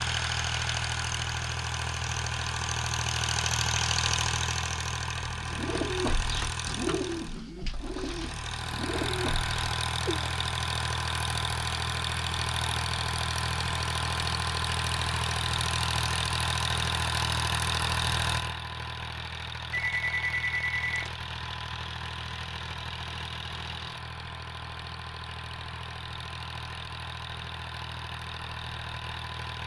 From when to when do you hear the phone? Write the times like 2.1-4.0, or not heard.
19.7-21.1.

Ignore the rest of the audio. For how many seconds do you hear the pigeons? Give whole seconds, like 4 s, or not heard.
5 s.